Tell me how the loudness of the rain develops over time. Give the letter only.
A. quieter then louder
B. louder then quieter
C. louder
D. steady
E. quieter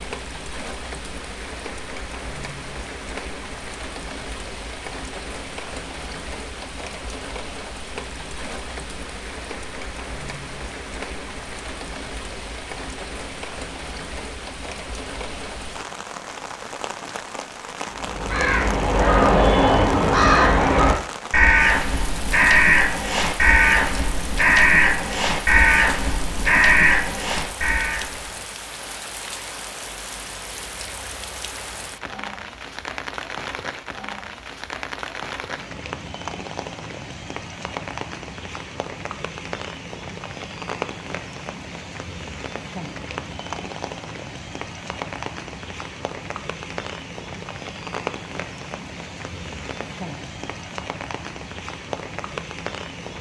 D.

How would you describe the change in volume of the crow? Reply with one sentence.
The loudness of the crow stays about the same.